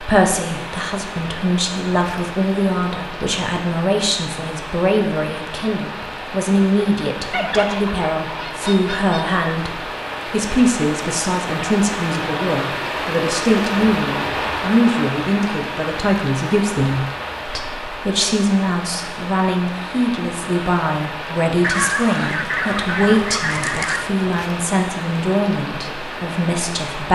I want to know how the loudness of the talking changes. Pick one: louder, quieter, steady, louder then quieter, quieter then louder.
steady.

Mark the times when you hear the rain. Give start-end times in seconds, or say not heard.
0.0-27.1.